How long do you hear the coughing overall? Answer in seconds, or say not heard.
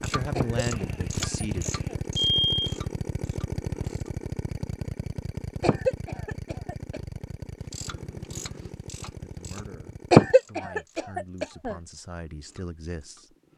5 s.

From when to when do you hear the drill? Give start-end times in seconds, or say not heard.
0.0-10.3.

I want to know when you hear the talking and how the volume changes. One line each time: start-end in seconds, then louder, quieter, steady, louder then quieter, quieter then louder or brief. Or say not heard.
0.0-1.8 brief
9.2-13.3 louder.